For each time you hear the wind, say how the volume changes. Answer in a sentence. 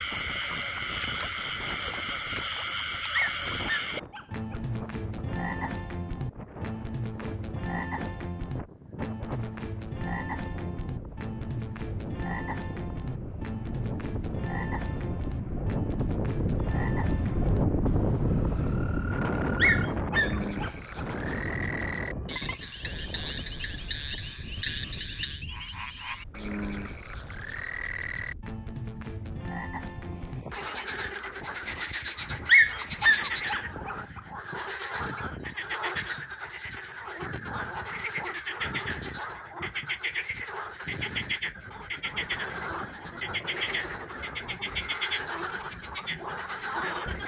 The wind can be heard from 0.0 to 47.2 s, getting louder then quieter.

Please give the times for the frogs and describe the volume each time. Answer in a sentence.
The frogs can be heard from 0.0 to 47.2 s, at a steady volume.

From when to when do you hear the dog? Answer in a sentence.
You can hear the dog from 3.1 to 4.6 s, from 19.6 to 21.1 s and from 32.5 to 34.0 s.